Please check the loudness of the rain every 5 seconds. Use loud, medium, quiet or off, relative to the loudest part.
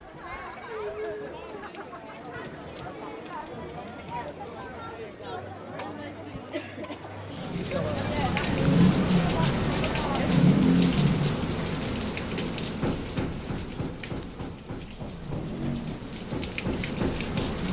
off, loud, loud, medium.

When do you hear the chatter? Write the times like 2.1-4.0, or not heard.
0.0-10.6.